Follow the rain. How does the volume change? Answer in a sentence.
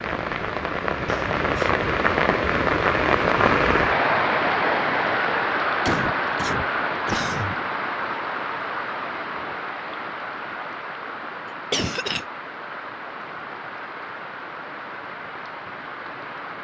The loudness of the rain goes down.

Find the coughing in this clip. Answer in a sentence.
You can hear the coughing from 1.1 to 1.7 s, from 5.8 to 7.5 s and from 11.7 to 12.2 s.